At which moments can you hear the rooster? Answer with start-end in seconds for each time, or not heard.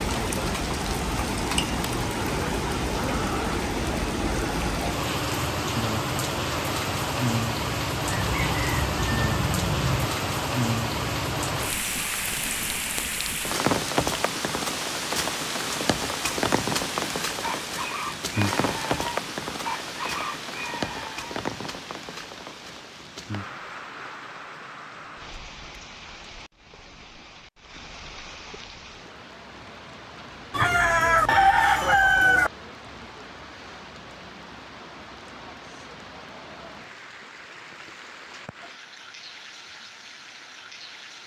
8.1-10.1, 17.4-21.4, 30.5-32.5.